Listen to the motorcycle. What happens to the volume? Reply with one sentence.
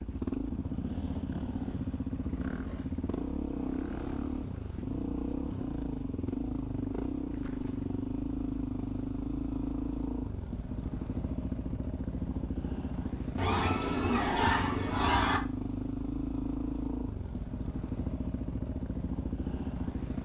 The loudness of the motorcycle stays about the same.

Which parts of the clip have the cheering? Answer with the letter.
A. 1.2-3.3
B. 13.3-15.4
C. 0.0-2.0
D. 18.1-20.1
B.